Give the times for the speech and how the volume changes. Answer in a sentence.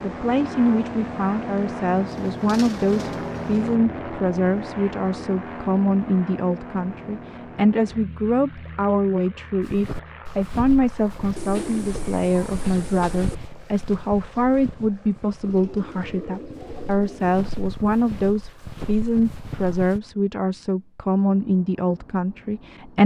You can hear the speech from 0.0 to 23.0 s, at a steady volume.